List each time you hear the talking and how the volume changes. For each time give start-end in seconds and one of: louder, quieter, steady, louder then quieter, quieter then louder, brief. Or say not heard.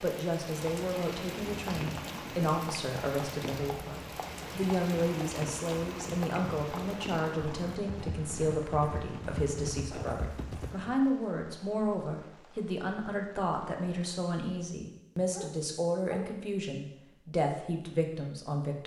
0.0-18.8 steady.